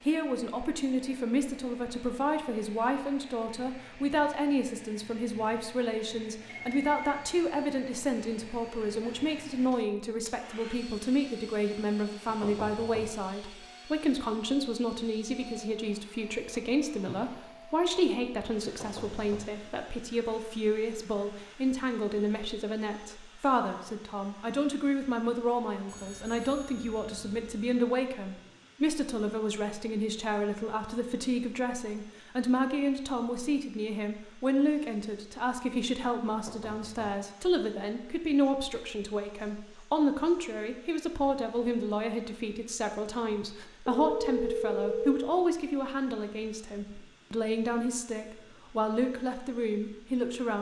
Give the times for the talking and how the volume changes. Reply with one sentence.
You can hear the talking from 0.1 to 50.5 s, at a steady volume.